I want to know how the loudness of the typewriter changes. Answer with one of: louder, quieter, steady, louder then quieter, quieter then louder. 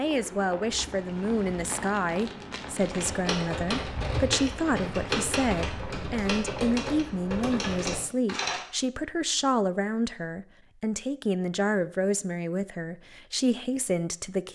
steady.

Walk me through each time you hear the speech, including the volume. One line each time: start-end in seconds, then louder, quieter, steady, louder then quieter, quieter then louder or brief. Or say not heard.
0.0-14.5 steady.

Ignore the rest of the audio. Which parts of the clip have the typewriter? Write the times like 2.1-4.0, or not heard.
2.7-8.7.